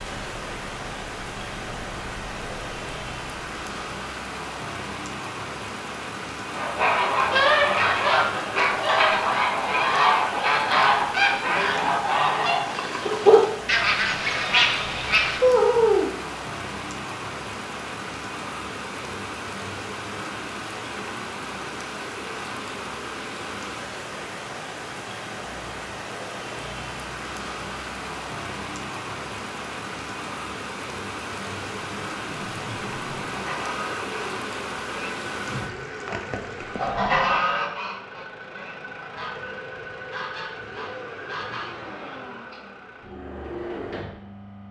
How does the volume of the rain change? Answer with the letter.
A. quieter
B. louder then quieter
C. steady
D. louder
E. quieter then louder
C.